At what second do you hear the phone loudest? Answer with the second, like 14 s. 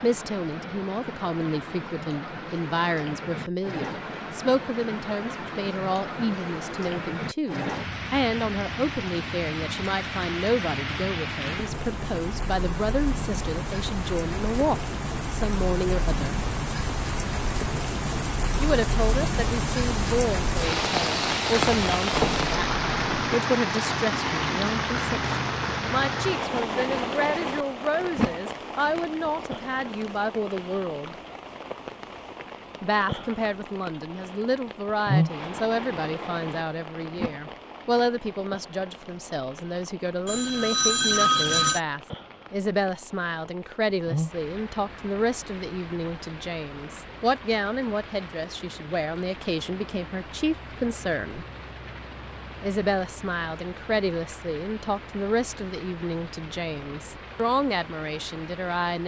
41 s.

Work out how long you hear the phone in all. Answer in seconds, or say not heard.
3 s.